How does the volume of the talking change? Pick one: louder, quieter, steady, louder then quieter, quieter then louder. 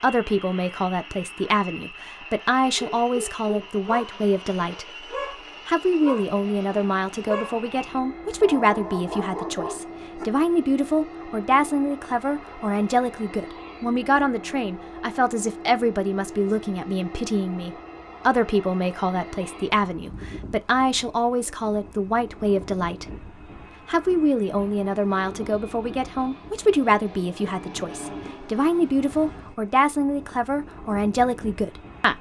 steady.